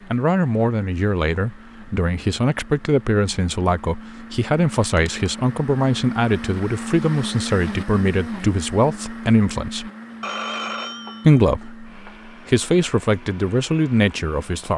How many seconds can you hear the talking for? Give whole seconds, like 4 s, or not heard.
13 s.